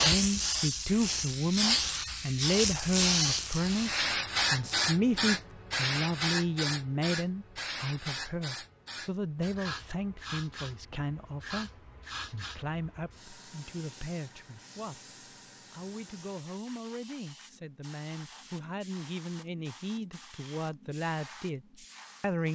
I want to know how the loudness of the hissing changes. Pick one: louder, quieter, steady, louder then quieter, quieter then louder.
quieter.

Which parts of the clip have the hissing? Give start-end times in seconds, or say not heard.
0.0-22.5.